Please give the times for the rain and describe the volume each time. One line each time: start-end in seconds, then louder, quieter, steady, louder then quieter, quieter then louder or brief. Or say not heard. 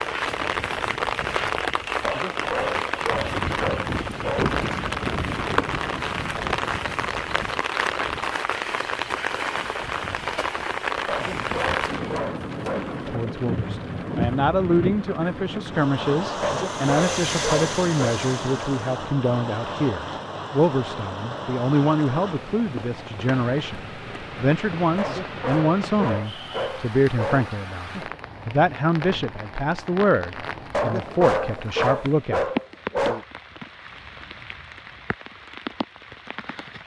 0.0-36.8 quieter.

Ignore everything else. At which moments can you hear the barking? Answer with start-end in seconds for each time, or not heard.
2.0-4.6, 11.1-12.9, 16.4-18.1, 24.9-27.5, 30.7-33.2.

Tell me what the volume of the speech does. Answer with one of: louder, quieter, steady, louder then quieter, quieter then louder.
steady.